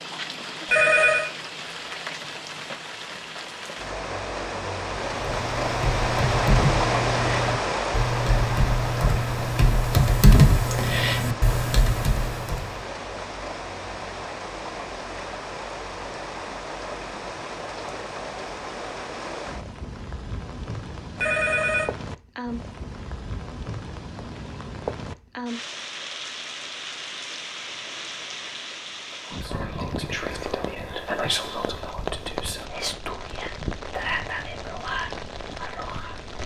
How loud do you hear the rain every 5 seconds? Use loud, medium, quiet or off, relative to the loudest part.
medium, loud, medium, medium, medium, medium, medium, medium.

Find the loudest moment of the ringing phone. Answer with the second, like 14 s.
1 s.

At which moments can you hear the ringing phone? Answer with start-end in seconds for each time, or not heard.
0.7-1.3, 21.1-21.9.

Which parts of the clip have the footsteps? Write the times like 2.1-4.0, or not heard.
not heard.